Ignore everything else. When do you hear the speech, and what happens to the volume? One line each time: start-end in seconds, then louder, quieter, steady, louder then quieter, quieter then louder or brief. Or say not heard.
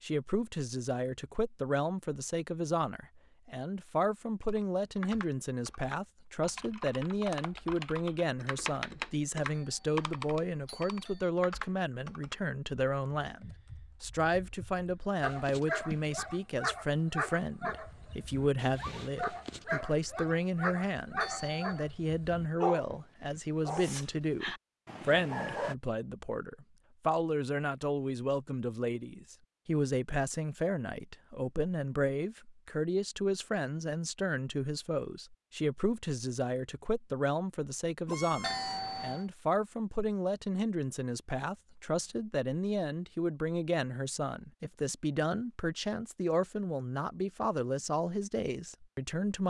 0.0-49.4 steady.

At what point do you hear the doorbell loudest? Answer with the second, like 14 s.
39 s.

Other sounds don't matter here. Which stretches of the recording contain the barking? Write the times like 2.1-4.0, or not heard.
15.2-25.8.